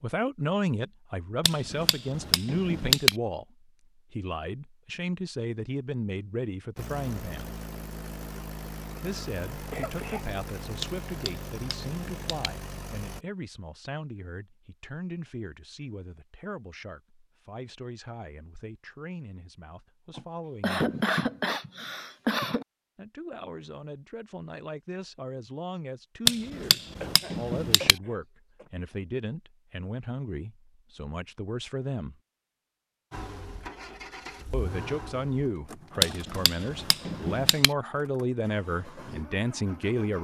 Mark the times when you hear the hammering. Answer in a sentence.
The hammering can be heard from 1.4 to 3.1 s, from 10.8 to 12.5 s, from 26.2 to 27.9 s and from 36.0 to 37.7 s.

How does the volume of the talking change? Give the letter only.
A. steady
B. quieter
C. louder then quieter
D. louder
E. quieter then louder
E.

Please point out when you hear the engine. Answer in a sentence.
The engine can be heard from 6.8 to 13.2 s and from 33.1 to 40.1 s.